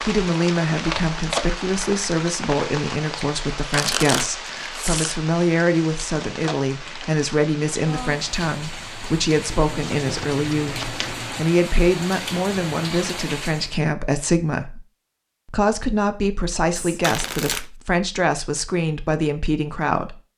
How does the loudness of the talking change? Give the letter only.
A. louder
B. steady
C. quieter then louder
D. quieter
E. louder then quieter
B.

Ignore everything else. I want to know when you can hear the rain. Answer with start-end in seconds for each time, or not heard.
0.0-13.8.